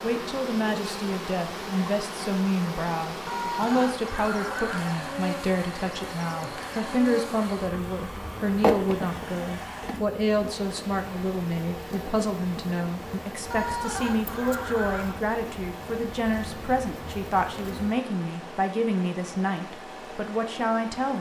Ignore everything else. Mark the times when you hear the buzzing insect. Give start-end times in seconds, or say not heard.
0.0-18.0.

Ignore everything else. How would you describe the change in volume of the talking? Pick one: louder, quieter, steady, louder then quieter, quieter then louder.
steady.